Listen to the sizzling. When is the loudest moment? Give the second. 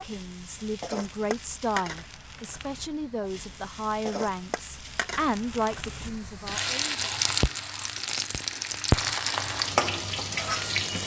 9 s.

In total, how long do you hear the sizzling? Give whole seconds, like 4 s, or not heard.
11 s.